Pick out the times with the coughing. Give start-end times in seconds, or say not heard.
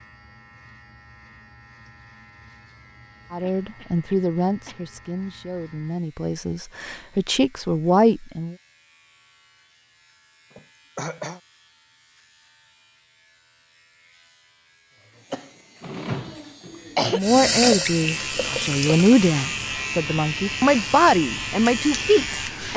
3.4-4.8, 10.5-11.4, 15.3-17.2.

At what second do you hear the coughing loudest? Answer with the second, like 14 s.
17 s.